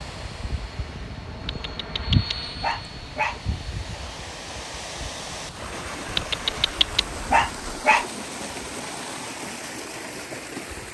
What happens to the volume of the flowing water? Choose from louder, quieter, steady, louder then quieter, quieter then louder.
louder.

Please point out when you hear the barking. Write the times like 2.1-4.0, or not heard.
1.4-3.4, 6.1-8.1.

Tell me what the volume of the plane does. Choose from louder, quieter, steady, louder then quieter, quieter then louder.
louder then quieter.